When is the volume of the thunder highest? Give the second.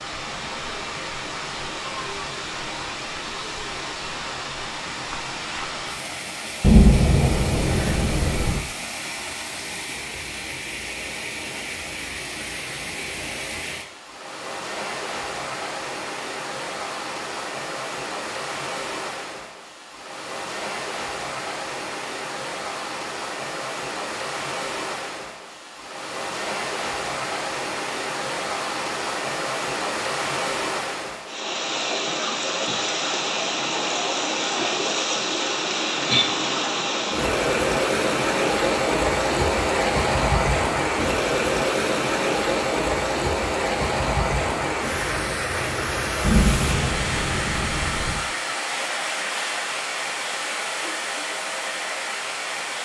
7 s.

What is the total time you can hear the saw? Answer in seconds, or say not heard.
not heard.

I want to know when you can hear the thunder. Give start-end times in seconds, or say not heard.
6.6-8.6, 46.2-48.2.